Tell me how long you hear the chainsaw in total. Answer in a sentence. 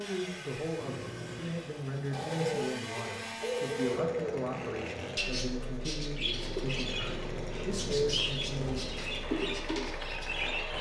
The chainsaw can be heard for 11 seconds in total.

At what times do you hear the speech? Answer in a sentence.
You can hear the speech from 0.0 to 8.8 s.